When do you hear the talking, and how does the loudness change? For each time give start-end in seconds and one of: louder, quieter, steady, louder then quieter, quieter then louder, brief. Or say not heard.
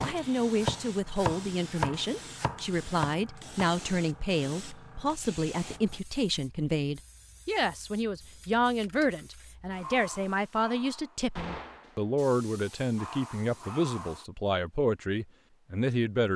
0.0-16.3 steady.